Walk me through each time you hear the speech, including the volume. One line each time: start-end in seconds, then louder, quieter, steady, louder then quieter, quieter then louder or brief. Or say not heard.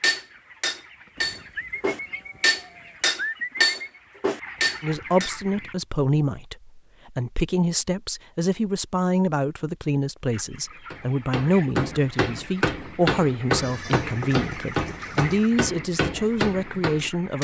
4.8-17.3 steady.